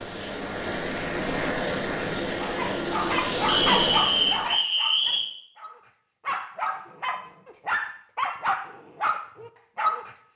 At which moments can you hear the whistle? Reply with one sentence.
The whistle can be heard from 3.5 to 5.3 s.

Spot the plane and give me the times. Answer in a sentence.
The plane can be heard from 0.0 to 4.5 s.